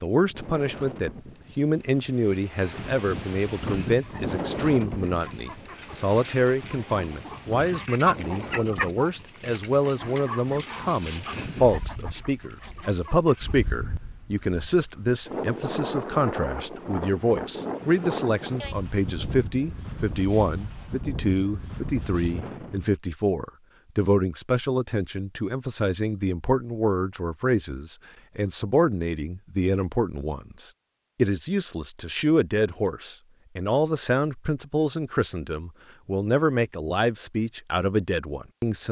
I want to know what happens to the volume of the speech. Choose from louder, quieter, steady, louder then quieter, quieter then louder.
steady.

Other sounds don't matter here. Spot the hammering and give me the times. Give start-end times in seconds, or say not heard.
not heard.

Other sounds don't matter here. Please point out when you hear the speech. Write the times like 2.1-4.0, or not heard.
0.0-38.8.